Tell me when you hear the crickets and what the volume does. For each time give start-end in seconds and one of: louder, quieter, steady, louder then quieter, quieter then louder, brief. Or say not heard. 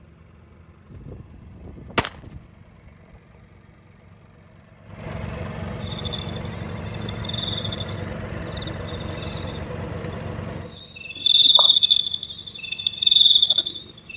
5.8-14.1 quieter then louder.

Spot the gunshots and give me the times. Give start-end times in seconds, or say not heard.
0.9-2.5.